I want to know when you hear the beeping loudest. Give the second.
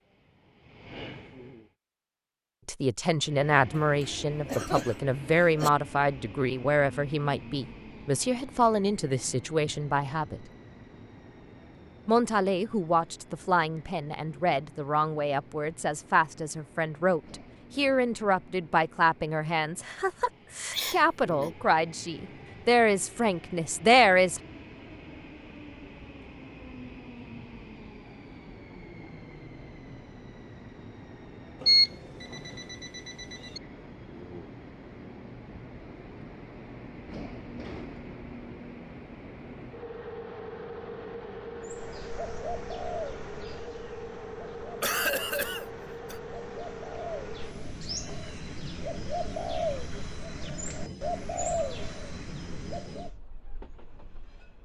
32 s.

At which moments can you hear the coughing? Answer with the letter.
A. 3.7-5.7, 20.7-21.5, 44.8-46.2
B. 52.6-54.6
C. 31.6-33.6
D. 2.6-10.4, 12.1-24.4
A.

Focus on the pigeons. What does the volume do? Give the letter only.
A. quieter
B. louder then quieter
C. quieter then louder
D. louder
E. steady
C.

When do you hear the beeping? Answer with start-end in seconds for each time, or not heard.
31.6-33.6.